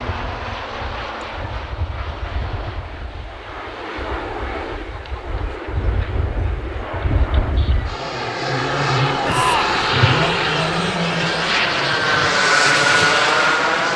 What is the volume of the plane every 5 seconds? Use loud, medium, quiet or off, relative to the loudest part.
quiet, medium, loud.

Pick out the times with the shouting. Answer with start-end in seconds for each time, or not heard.
9.2-9.8.